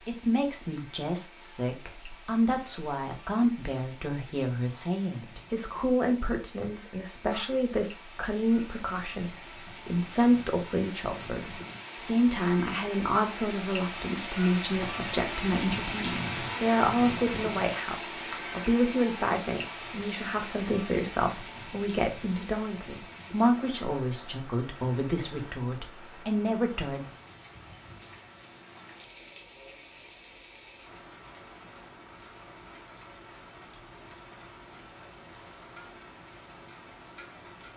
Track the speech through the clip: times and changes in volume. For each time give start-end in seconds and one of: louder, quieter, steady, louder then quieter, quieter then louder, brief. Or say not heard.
0.1-27.1 steady.